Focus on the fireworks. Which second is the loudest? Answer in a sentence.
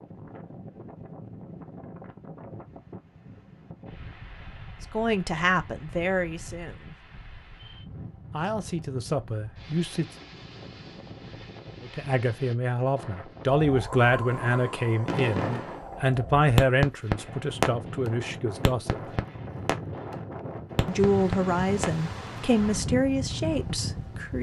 The loudest moment of the fireworks is at 17 seconds.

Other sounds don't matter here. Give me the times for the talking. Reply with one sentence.
You can hear the talking from 4.9 to 7.0 s, from 8.3 to 10.1 s, from 11.8 to 19.1 s and from 20.9 to 24.3 s.